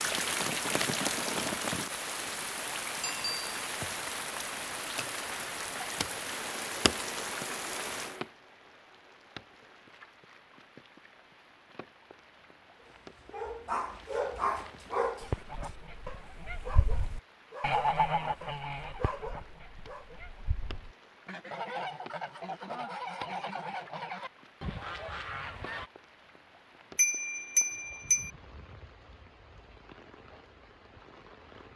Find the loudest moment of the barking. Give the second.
14 s.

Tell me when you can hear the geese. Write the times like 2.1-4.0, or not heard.
15.2-25.9.